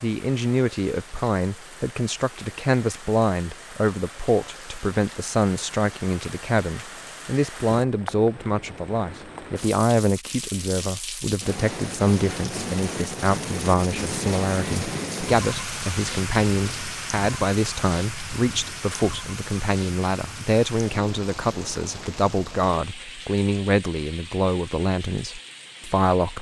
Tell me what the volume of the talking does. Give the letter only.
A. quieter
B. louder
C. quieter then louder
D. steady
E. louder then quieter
D.